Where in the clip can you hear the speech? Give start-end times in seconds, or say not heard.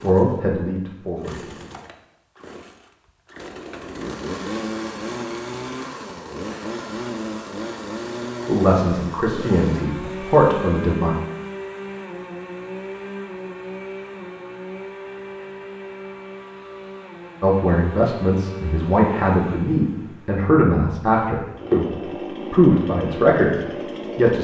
0.0-1.6, 8.4-11.2, 17.4-24.3.